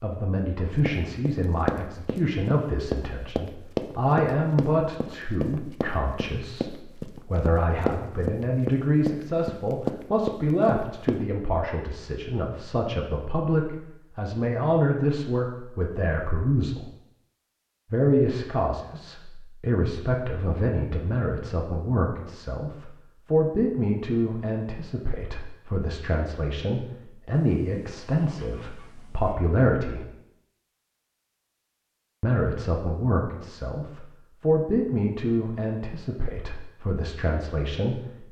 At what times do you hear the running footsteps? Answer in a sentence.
You can hear the running footsteps from 0.8 to 11.2 s.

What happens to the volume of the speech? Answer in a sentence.
The volume of the speech stays about the same.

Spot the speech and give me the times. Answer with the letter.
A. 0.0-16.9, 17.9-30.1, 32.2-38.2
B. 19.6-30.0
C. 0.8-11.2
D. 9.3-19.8
A.